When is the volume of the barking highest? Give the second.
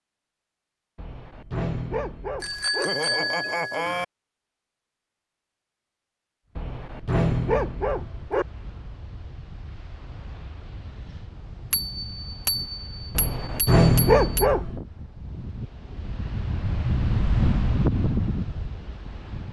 14 s.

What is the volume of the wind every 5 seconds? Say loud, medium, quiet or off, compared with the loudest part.
off, quiet, quiet, loud.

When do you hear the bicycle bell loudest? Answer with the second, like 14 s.
3 s.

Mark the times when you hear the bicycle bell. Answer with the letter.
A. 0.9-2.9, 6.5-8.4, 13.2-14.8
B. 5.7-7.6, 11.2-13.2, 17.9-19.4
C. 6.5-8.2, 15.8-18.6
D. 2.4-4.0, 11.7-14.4
D.